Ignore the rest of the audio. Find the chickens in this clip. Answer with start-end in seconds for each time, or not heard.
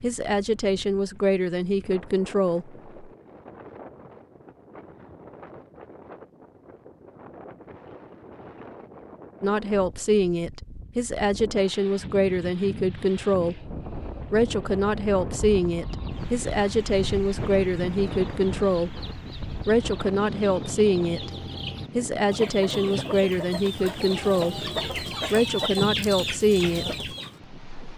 15.8-27.3.